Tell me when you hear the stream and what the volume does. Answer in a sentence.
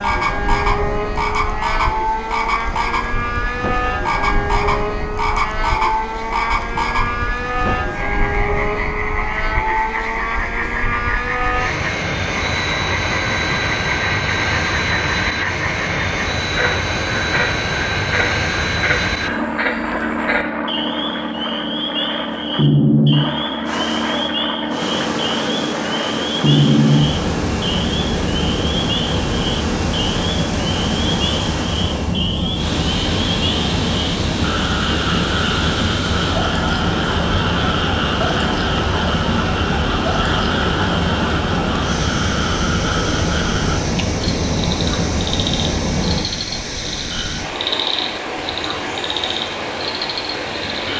You can hear the stream from 23.6 to 50.9 s, at a steady volume.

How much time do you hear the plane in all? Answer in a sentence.
You can hear the plane for 46 seconds altogether.